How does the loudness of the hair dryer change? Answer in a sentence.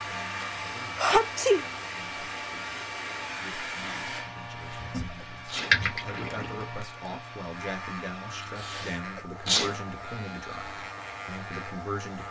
The loudness of the hair dryer goes down.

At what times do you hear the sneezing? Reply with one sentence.
The sneezing can be heard from 0.4 to 1.6 s, from 4.6 to 5.8 s and from 8.6 to 9.8 s.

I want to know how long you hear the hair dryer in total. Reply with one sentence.
You can hear the hair dryer for 12 seconds altogether.